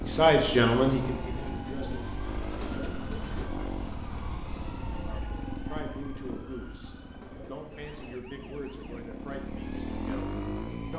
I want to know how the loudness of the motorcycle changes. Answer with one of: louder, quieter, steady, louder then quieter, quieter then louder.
quieter then louder.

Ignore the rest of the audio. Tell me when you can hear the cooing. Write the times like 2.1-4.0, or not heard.
1.6-3.5, 6.2-8.2.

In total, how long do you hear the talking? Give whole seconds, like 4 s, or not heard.
8 s.